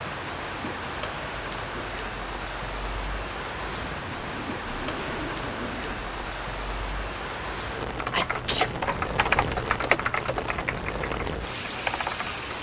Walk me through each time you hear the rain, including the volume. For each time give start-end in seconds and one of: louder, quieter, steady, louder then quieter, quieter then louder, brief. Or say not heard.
0.0-12.5 steady.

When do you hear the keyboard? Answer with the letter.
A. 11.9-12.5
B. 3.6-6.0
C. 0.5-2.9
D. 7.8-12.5
D.